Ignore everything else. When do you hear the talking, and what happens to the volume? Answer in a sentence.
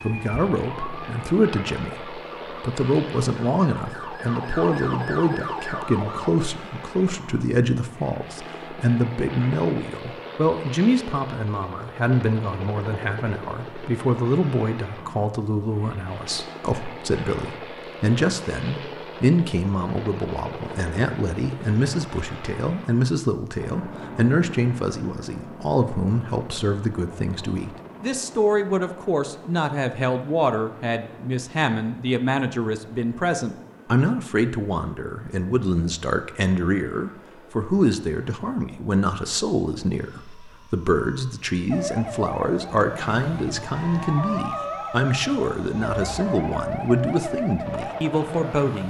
You can hear the talking from 0.0 to 48.8 s, at a steady volume.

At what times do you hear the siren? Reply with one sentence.
The siren can be heard from 0.0 to 6.3 s and from 41.7 to 48.8 s.